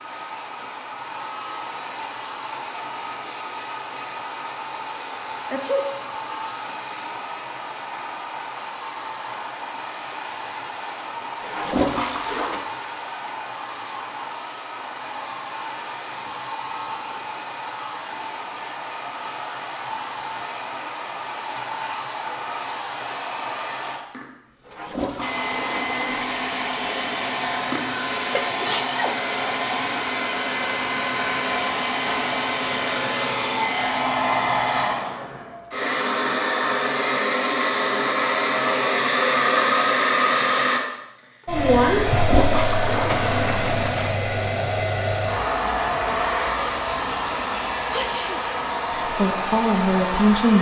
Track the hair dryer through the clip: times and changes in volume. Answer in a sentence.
You can hear the hair dryer from 0.0 to 50.5 s, getting louder.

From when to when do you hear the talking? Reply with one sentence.
You can hear the talking from 49.1 to 50.5 s.